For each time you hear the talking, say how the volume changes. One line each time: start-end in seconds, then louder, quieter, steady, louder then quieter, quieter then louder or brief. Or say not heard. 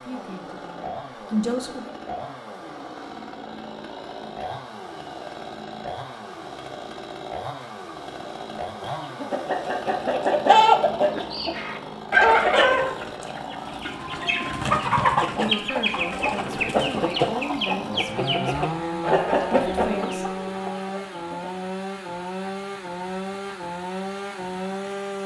0.0-1.9 brief
15.3-20.2 steady.